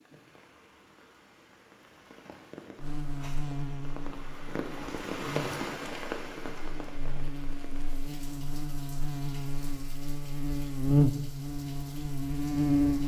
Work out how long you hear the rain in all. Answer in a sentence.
You can hear the rain for 13 seconds altogether.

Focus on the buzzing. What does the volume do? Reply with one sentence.
The loudness of the buzzing goes up.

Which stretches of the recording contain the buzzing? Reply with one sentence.
You can hear the buzzing from 2.8 to 13.0 s.